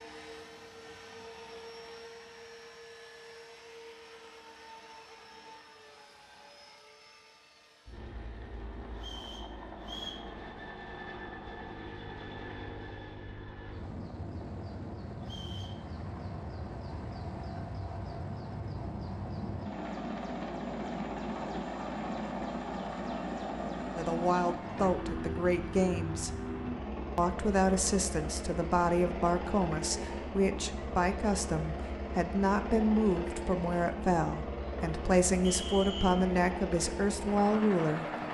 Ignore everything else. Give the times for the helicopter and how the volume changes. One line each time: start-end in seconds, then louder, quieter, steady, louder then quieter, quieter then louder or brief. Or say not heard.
0.0-38.2 louder.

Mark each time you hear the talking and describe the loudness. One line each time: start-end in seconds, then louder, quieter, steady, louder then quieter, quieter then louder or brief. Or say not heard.
23.9-26.3 brief
27.1-38.0 steady.